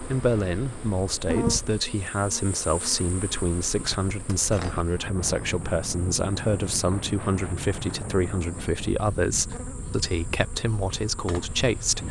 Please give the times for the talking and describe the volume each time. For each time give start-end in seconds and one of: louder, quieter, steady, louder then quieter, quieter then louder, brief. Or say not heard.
0.1-12.0 steady.